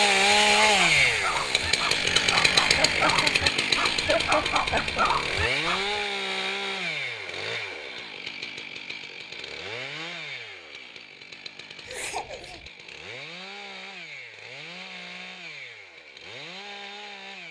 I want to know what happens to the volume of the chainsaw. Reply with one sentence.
The loudness of the chainsaw goes down.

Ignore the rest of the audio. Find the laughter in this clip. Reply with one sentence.
You can hear the laughter from 2.8 to 5.1 s and from 11.8 to 12.7 s.